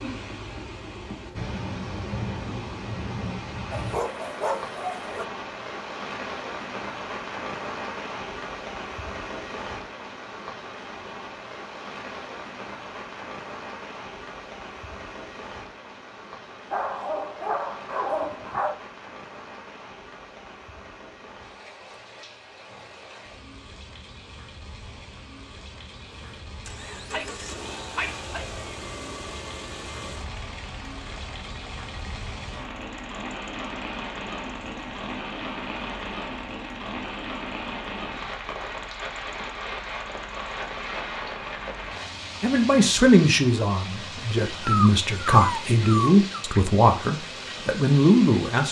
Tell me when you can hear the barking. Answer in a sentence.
The barking can be heard from 3.7 to 5.2 s, from 16.7 to 18.8 s, from 27.1 to 28.4 s and from 44.6 to 46.2 s.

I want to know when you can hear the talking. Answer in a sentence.
The talking can be heard from 42.4 to 48.6 s.